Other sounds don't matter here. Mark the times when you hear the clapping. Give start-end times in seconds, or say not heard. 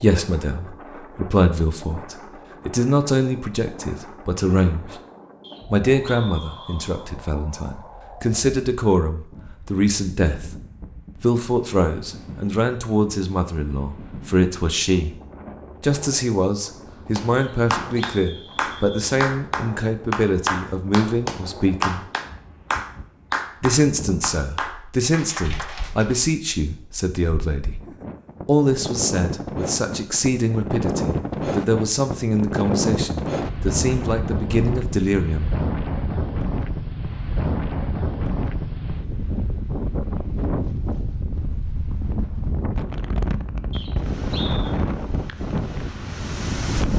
17.1-26.3.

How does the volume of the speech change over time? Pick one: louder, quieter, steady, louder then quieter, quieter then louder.
steady.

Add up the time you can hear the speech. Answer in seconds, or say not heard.
31 s.